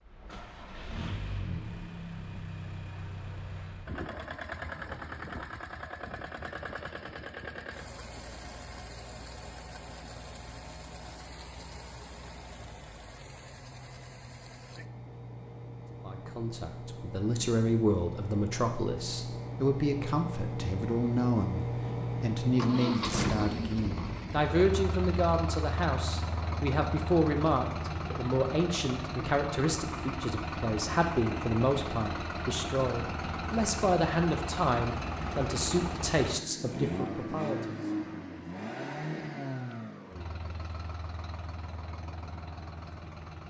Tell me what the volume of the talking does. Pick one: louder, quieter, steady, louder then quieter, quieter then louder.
steady.